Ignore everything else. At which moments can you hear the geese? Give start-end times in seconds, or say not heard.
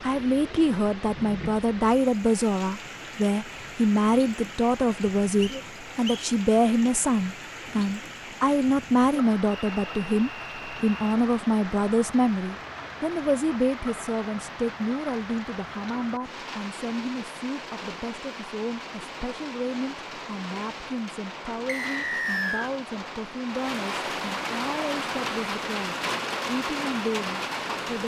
not heard.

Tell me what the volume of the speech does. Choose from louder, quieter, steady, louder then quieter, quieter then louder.
quieter.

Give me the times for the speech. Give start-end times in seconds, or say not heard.
0.0-28.0.